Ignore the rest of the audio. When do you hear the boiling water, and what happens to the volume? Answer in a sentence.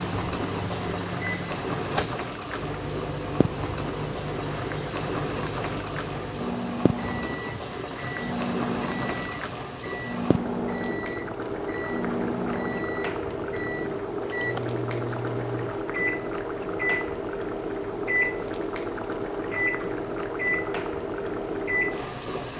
You can hear the boiling water from 0.0 to 22.5 s, at a steady volume.